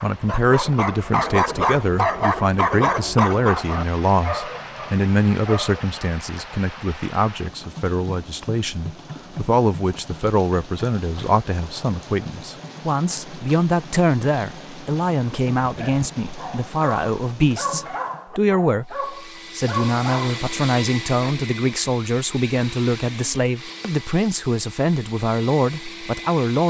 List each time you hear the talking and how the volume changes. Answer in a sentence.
The talking can be heard from 0.0 to 26.6 s, at a steady volume.